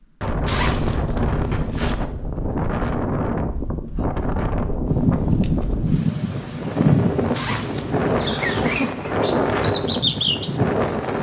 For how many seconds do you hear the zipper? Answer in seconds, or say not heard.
3 s.